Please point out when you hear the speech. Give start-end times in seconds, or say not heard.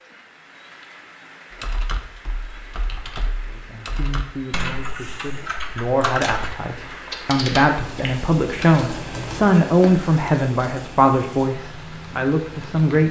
3.5-13.0.